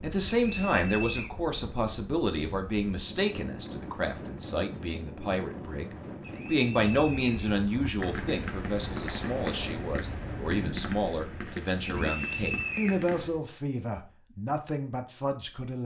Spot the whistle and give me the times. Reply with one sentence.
You can hear the whistle from 0.3 to 1.3 s, from 6.2 to 7.5 s and from 11.8 to 13.1 s.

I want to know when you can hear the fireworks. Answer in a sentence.
You can hear the fireworks from 7.8 to 13.4 s.